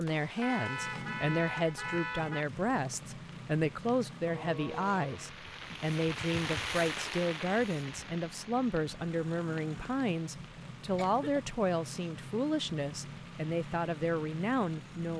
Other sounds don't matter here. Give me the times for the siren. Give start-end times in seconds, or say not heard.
not heard.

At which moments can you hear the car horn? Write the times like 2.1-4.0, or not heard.
0.4-2.5.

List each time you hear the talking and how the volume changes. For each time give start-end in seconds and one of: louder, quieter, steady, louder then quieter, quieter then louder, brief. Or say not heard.
0.0-15.1 steady.